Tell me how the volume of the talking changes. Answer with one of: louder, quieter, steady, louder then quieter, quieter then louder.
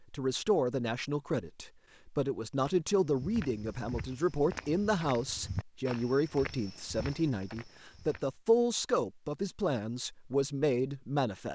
steady.